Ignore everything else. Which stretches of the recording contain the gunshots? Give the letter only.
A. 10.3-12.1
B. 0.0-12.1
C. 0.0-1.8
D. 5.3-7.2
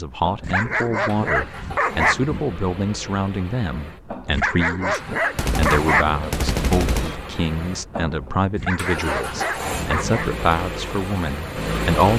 D.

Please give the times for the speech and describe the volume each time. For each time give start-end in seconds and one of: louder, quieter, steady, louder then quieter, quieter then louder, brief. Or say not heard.
0.0-12.1 steady.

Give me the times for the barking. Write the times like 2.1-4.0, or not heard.
0.4-2.5, 4.3-6.0, 8.6-10.3.